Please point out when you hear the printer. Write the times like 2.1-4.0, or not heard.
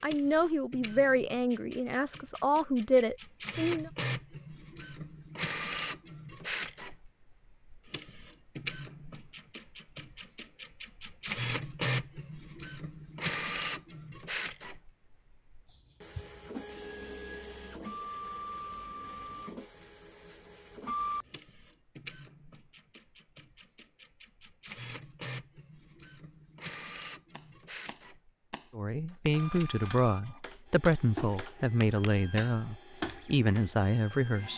0.0-34.5.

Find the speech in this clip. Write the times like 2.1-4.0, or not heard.
0.0-3.9, 28.8-34.5.